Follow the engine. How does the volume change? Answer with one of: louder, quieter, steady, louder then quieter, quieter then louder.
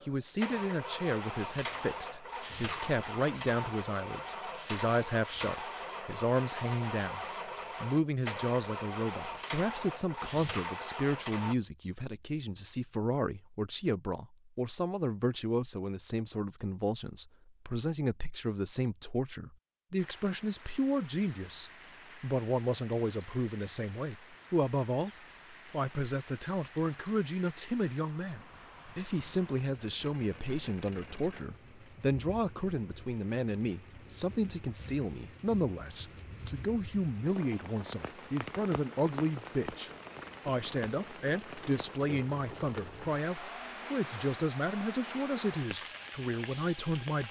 steady.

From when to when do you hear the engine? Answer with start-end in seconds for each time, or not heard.
0.0-11.6.